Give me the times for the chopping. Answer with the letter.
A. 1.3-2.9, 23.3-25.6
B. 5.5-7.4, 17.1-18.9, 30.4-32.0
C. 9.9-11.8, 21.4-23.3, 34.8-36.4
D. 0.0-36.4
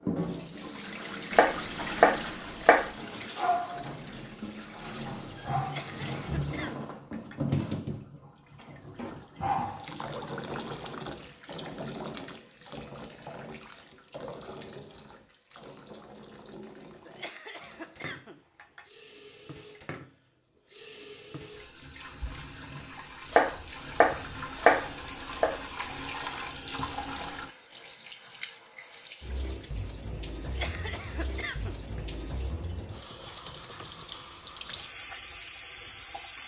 A.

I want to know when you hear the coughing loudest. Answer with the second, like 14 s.
31 s.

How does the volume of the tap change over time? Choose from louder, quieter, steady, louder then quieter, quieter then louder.
quieter then louder.